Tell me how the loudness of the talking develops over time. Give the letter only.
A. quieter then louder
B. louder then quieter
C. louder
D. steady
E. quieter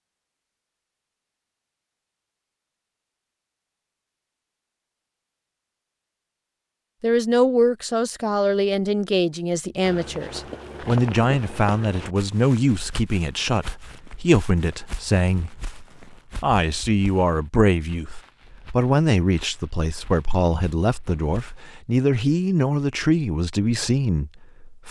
D.